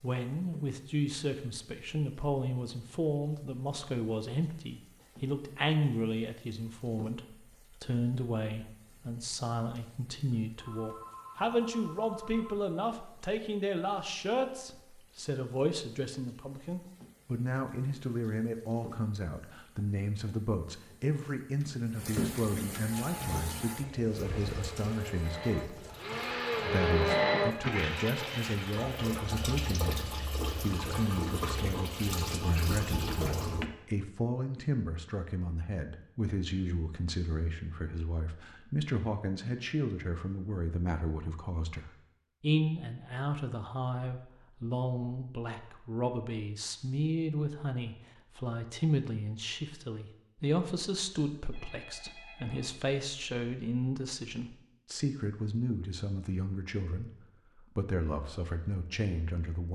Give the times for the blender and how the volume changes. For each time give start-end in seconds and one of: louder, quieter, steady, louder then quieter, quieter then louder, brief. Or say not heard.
23.0-33.1 louder then quieter.